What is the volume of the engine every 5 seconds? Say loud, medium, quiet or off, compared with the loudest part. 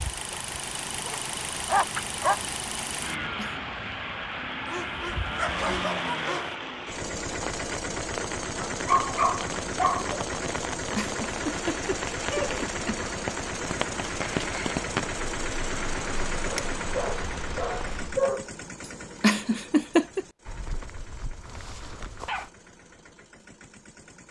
loud, loud, loud, loud, quiet.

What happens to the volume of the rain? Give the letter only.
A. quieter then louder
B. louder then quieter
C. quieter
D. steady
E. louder
E.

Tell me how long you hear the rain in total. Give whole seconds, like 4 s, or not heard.
18 s.